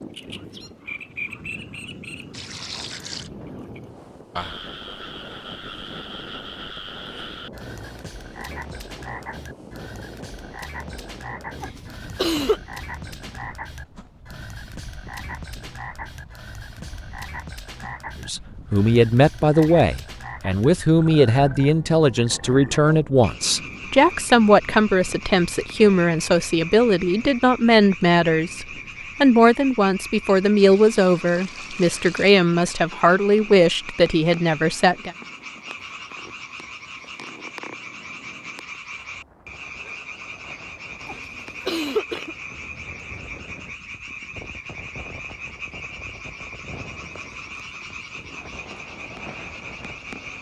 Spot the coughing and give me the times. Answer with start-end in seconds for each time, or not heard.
11.6-12.6, 41.0-42.4.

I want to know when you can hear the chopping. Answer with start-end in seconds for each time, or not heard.
not heard.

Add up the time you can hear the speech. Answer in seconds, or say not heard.
17 s.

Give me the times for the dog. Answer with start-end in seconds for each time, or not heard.
not heard.